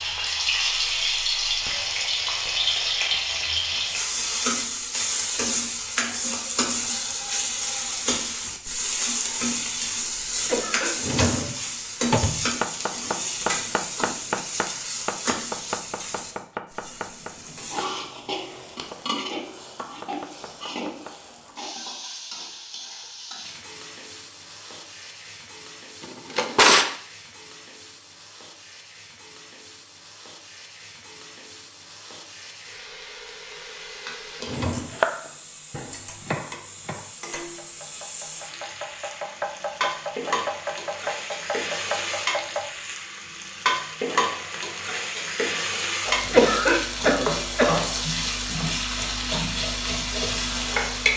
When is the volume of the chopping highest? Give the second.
35 s.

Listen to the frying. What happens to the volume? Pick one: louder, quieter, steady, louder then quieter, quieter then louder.
quieter then louder.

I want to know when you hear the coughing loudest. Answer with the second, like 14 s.
47 s.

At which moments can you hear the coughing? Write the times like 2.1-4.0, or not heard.
10.4-11.5, 46.2-47.7.